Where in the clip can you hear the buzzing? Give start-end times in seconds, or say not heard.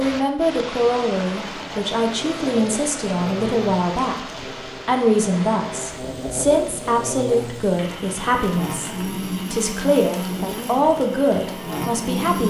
2.0-12.4.